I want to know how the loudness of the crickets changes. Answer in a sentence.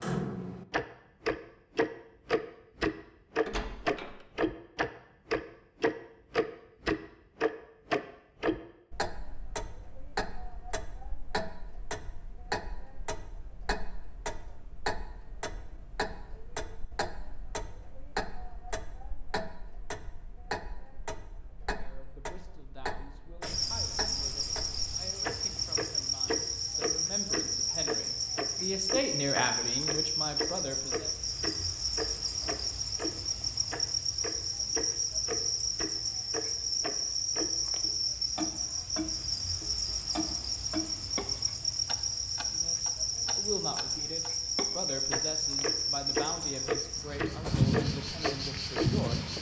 The volume of the crickets stays about the same.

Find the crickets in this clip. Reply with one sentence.
The crickets can be heard from 23.4 to 49.3 s.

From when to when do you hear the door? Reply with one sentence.
You can hear the door from 3.5 to 4.2 s.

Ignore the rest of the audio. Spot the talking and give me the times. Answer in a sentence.
You can hear the talking from 21.6 to 31.1 s and from 42.5 to 49.2 s.